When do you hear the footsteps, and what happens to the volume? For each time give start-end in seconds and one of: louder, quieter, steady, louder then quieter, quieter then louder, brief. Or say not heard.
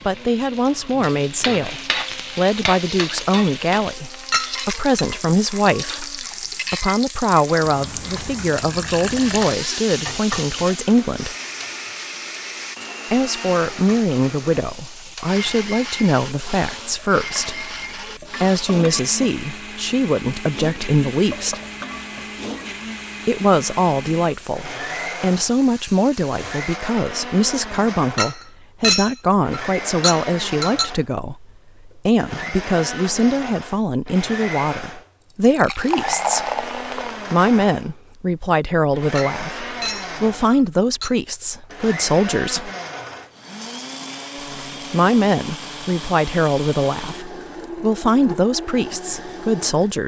not heard.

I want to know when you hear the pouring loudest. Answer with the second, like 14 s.
36 s.